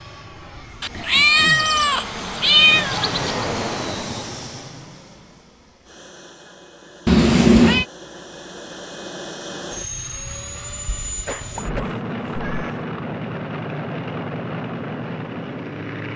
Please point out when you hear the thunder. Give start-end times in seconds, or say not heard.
not heard.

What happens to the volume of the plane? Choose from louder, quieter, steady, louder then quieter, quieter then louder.
quieter then louder.